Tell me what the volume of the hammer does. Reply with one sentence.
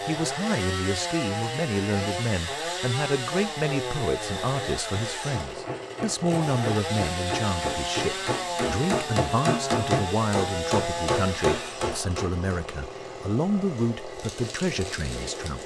The loudness of the hammer goes up.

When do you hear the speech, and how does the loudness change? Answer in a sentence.
The speech can be heard from 0.1 to 15.6 s, at a steady volume.